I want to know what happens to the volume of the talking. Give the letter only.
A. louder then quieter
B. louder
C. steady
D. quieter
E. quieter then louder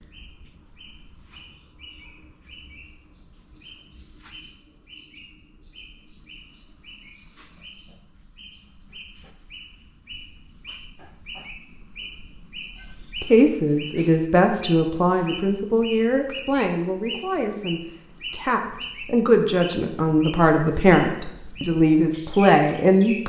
E.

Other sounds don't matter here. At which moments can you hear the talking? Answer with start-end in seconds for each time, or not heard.
13.2-23.2.